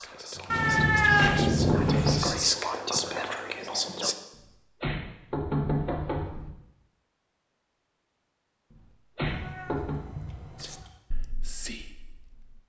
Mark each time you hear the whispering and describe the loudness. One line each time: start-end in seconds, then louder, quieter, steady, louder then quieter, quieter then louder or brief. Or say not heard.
0.0-4.2 louder then quieter
10.6-12.6 brief.